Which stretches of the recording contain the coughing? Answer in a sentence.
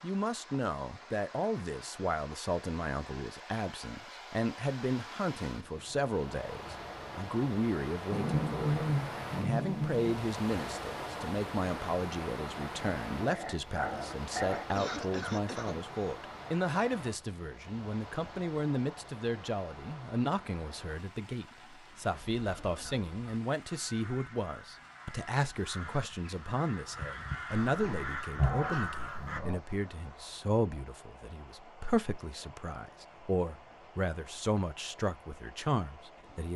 You can hear the coughing from 14.6 to 16.1 s and from 22.4 to 23.1 s.